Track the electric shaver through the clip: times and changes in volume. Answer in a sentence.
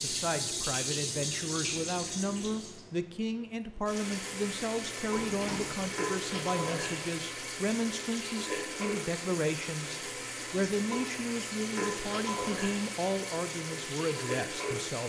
You can't hear the electric shaver here.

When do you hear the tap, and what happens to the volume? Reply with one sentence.
You can hear the tap from 0.0 to 15.0 s, at a steady volume.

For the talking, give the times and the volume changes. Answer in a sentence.
You can hear the talking from 0.0 to 15.0 s, at a steady volume.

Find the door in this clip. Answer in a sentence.
You can hear the door from 5.2 to 5.9 s.